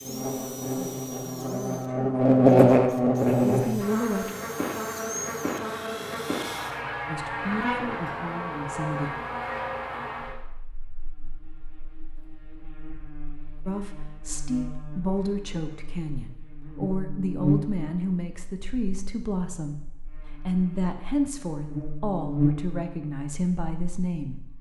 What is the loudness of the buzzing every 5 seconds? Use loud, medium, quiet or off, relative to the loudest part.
loud, medium, quiet, medium, medium.